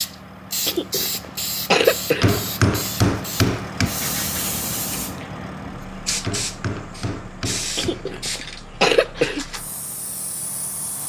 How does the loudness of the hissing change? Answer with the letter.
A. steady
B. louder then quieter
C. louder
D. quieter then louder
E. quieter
E.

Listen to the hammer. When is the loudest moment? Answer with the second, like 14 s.
3 s.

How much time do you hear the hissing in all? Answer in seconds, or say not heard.
11 s.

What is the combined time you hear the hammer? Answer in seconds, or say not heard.
4 s.